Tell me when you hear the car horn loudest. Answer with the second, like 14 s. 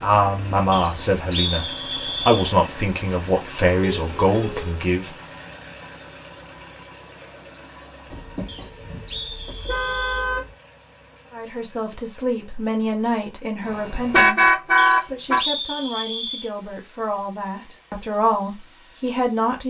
14 s.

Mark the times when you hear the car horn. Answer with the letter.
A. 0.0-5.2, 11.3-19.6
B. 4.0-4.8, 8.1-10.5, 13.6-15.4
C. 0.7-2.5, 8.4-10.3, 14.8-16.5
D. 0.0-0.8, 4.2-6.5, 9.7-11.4
B.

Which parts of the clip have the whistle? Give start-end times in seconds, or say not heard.
0.7-2.5, 8.4-10.3, 14.8-16.5.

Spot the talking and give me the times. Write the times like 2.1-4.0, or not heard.
0.0-5.2, 11.3-19.6.